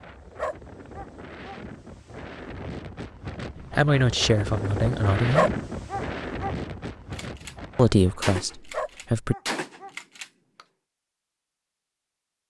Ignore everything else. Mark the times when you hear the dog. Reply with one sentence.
You can hear the dog from 0.3 to 1.6 s, from 5.3 to 6.5 s and from 8.7 to 9.9 s.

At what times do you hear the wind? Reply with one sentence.
You can hear the wind from 0.0 to 8.3 s.